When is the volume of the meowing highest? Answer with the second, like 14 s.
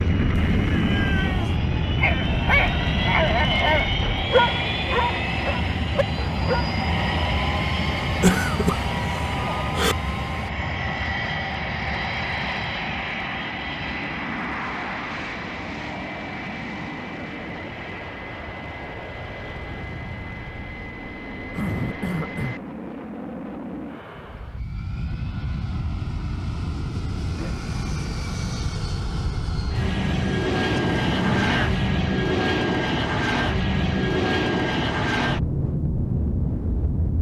31 s.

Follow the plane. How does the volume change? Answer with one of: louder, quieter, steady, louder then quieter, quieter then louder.
quieter then louder.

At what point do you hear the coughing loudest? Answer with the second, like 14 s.
8 s.